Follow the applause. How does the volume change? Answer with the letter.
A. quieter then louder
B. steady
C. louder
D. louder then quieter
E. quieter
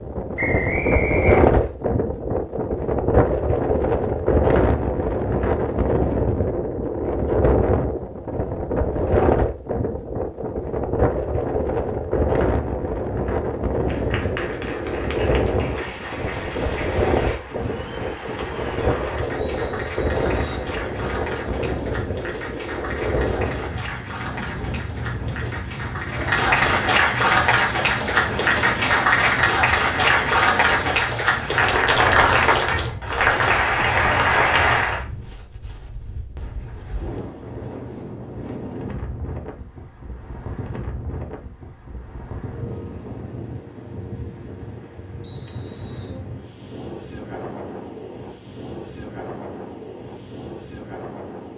C.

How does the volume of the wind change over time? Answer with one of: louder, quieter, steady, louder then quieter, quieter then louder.
quieter.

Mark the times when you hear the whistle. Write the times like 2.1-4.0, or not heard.
0.3-1.6, 19.5-20.6, 45.2-46.1.